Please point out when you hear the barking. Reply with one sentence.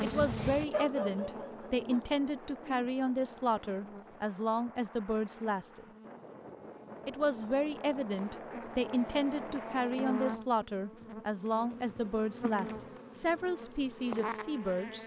You can hear the barking from 0.0 to 2.0 s.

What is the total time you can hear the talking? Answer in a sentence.
You can hear the talking for 14 seconds altogether.